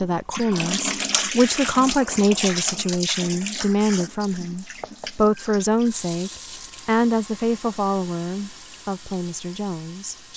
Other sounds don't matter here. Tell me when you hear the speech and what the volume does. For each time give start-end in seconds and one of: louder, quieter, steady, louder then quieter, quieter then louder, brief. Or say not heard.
0.0-10.3 quieter.